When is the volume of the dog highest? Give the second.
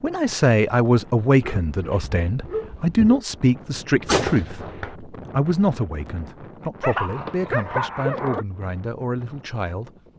8 s.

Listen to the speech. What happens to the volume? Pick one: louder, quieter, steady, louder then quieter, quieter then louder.
quieter.